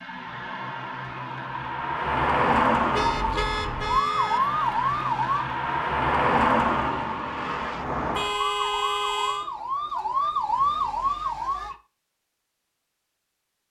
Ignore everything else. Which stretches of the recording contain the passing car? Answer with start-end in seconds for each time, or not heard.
0.0-8.3.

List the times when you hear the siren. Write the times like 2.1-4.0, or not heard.
3.1-5.5, 8.3-11.8.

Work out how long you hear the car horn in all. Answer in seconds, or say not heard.
3 s.